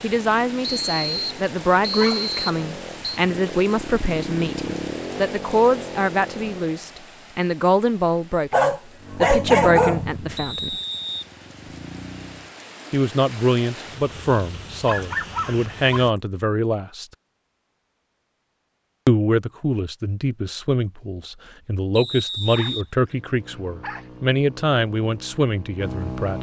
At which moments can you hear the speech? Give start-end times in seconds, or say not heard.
0.0-10.8, 12.9-17.1, 19.1-26.3.